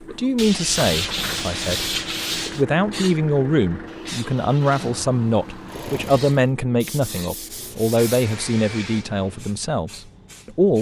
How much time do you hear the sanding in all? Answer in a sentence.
The sanding can be heard for 4 seconds in total.